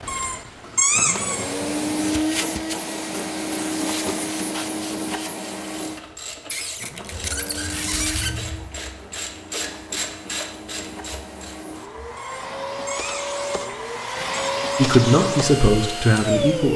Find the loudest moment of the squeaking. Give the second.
1 s.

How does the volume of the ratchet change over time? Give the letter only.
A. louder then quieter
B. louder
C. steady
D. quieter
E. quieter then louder
A.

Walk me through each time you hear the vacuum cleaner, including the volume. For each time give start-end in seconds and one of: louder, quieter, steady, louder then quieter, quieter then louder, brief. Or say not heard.
0.0-16.7 quieter then louder.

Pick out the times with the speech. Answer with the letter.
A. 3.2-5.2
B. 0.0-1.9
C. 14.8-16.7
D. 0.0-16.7
C.